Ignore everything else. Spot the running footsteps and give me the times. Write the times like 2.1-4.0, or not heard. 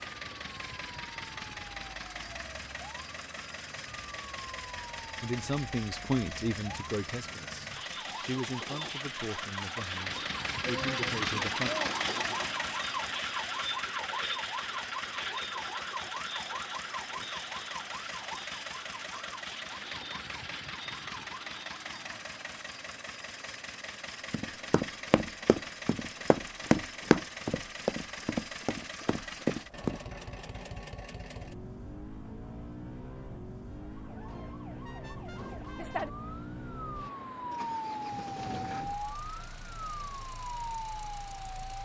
24.3-29.9.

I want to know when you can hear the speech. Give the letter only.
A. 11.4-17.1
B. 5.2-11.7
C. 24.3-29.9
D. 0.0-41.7
B.